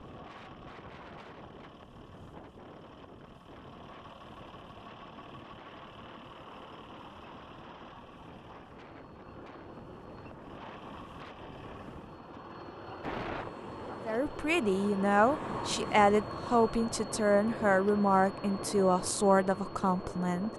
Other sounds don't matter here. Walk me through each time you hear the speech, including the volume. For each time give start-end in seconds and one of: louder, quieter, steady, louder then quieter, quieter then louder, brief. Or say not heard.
14.1-20.5 steady.